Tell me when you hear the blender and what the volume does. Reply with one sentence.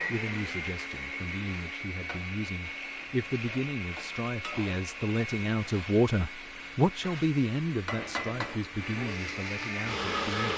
The blender can be heard from 0.0 to 10.5 s, getting quieter then louder.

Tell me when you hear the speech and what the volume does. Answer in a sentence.
You can hear the speech from 0.1 to 10.5 s, getting louder then quieter.